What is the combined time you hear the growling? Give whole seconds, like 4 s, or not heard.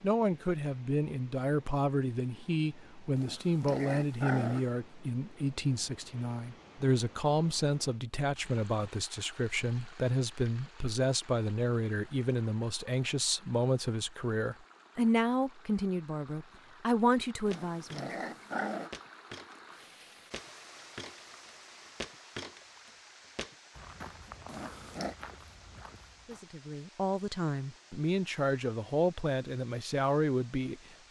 4 s.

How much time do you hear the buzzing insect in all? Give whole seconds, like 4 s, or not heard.
not heard.